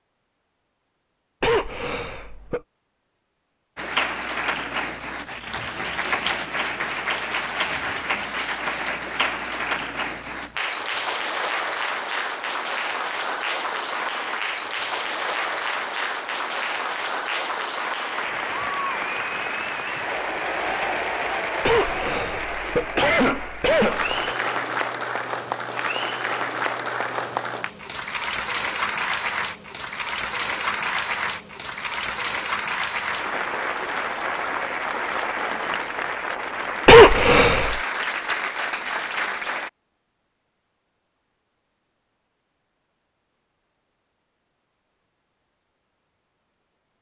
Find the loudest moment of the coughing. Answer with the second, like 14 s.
37 s.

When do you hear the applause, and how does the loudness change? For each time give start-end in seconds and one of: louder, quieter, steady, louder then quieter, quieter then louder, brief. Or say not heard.
3.8-39.7 steady.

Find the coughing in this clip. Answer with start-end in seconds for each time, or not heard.
1.4-2.6, 21.6-24.1, 36.9-37.8.